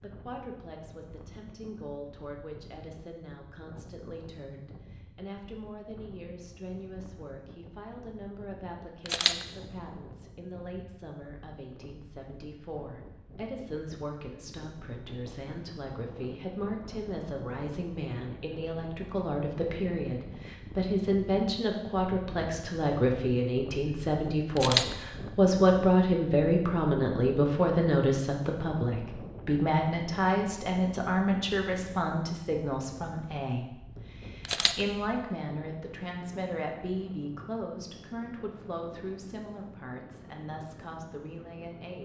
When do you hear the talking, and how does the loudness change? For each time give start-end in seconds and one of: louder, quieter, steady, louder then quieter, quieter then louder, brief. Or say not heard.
0.0-42.0 louder then quieter.